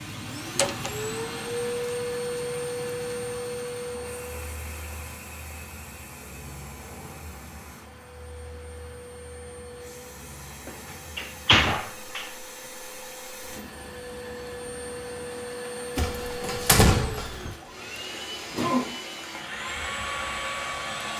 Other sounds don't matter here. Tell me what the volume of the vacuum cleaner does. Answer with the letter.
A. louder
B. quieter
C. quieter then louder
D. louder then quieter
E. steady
C.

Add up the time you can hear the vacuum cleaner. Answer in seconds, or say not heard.
21 s.